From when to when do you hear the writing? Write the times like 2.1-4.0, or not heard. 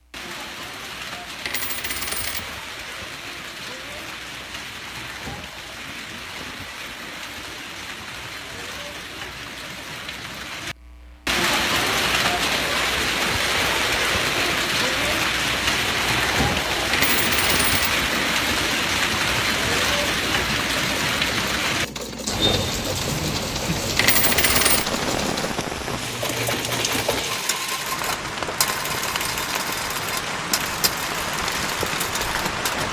not heard.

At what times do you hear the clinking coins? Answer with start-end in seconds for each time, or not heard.
1.4-2.6, 16.9-18.1, 23.9-24.9.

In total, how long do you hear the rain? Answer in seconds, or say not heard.
33 s.